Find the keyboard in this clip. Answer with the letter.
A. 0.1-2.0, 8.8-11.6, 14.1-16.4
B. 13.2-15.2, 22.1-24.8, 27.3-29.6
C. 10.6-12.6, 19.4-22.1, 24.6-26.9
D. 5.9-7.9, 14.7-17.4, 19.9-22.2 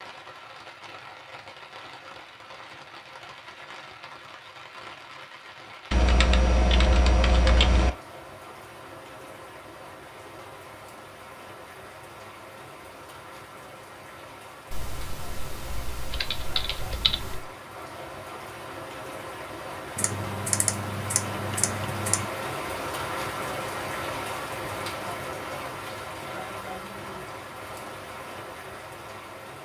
D.